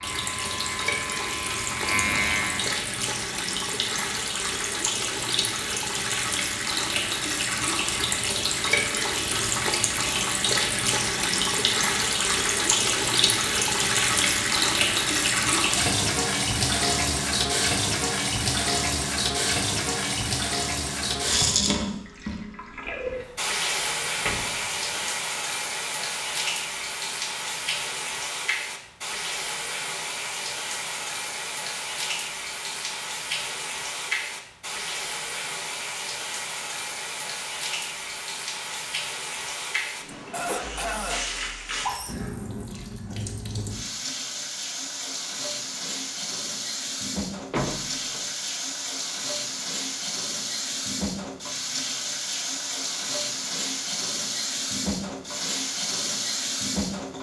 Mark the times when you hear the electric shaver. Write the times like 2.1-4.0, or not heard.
0.0-2.9.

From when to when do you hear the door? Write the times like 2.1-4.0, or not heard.
24.2-25.1, 47.5-48.2.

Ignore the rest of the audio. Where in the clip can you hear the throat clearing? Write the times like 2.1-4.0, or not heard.
40.1-41.2.